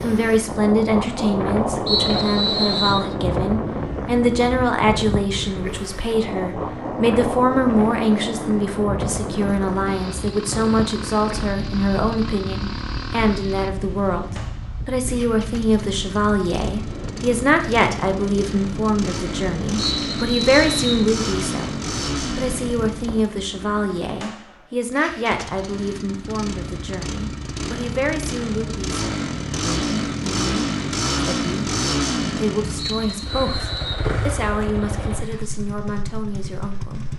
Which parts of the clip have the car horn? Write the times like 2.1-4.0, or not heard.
not heard.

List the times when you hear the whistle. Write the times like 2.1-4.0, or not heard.
1.9-3.0, 19.8-21.1, 32.8-34.0.